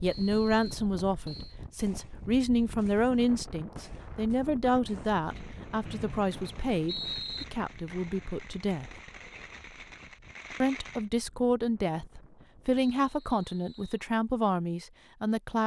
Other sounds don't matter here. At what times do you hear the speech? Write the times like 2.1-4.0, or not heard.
0.0-8.9, 10.6-15.6.